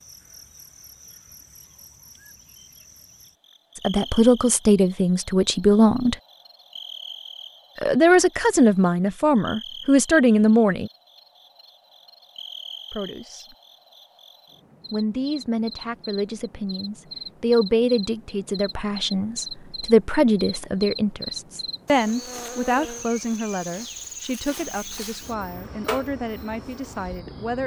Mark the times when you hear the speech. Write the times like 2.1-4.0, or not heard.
3.8-6.2, 7.8-10.9, 12.9-13.6, 14.9-27.6.